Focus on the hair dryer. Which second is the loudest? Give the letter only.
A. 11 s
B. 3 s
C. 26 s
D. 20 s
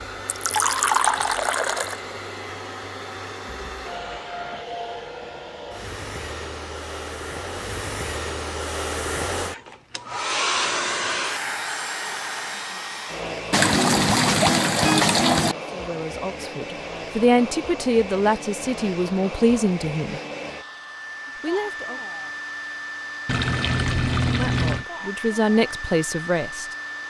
A.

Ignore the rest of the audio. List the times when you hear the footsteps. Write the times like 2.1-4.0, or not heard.
not heard.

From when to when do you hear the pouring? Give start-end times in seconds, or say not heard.
0.2-1.9, 13.5-15.6, 23.2-24.9.